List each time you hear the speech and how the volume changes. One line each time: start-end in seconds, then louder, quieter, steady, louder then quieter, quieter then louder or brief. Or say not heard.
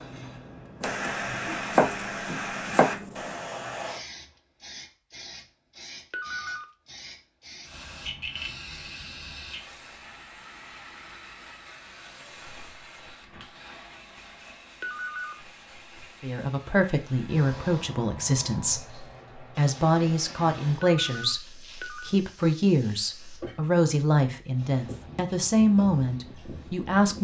16.2-27.1 steady.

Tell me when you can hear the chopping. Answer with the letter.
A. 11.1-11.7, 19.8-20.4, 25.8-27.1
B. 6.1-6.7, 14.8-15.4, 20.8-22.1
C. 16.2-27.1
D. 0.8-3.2
D.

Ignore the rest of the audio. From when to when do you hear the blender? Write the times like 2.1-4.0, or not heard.
not heard.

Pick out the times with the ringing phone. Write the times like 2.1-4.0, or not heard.
6.1-6.7, 14.8-15.4, 20.8-22.1.